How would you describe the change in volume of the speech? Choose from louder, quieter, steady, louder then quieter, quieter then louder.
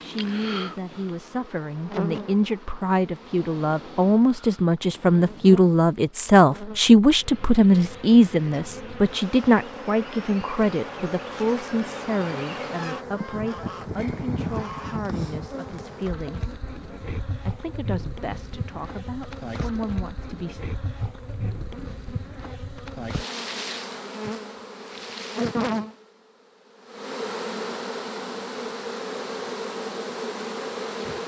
louder then quieter.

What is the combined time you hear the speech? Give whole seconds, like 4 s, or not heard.
20 s.